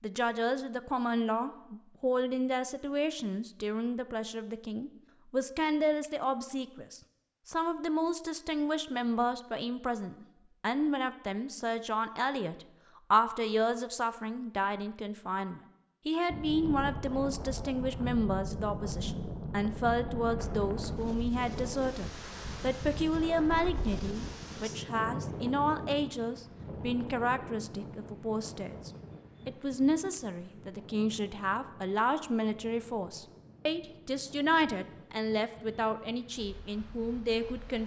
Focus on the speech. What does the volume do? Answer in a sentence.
The volume of the speech stays about the same.